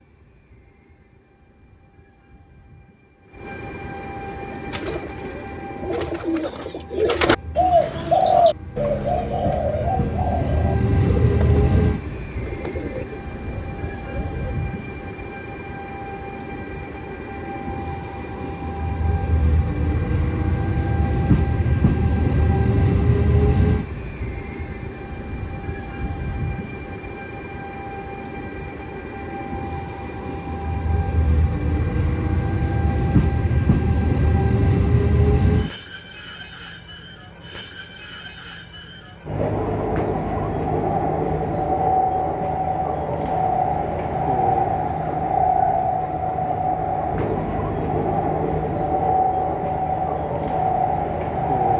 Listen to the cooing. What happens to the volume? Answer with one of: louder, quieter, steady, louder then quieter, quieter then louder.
louder then quieter.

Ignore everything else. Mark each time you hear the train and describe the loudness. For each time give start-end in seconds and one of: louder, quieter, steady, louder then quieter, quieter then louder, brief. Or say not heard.
0.0-51.7 louder.